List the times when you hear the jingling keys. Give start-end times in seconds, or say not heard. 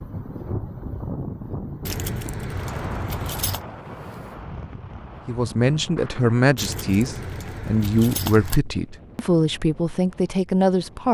1.9-3.6, 6.5-8.6.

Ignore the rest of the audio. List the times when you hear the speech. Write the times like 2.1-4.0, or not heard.
5.2-11.0.